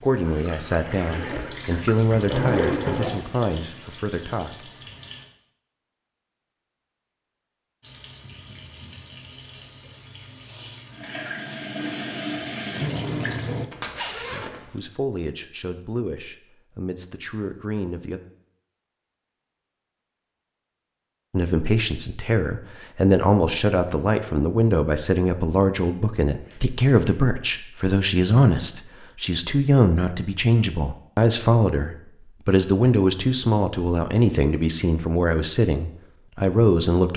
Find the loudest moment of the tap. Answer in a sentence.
The volume of the tap peaks at 13 seconds.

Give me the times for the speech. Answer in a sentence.
The speech can be heard from 0.0 to 4.7 s, from 14.3 to 18.2 s and from 21.3 to 37.1 s.